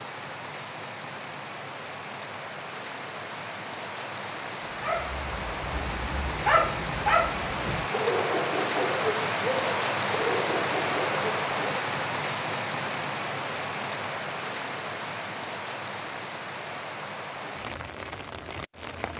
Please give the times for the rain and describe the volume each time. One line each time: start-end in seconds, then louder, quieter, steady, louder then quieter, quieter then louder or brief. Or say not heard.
0.0-19.1 louder then quieter.